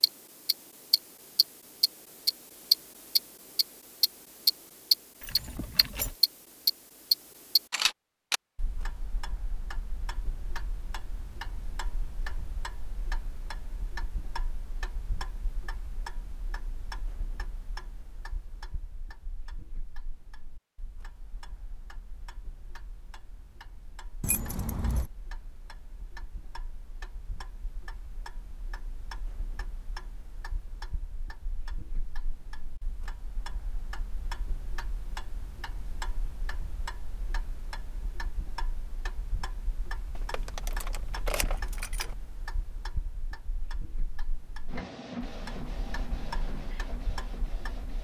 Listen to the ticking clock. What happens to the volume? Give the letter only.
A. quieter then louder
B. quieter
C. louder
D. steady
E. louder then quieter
A.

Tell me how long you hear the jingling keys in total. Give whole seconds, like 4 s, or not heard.
4 s.